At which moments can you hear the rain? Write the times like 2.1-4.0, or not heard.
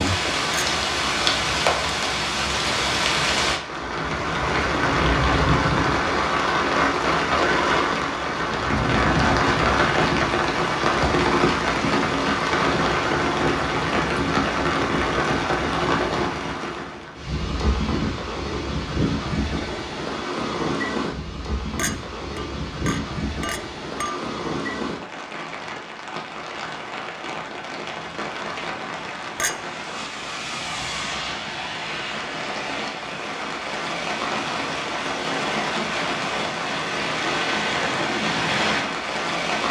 0.0-39.6.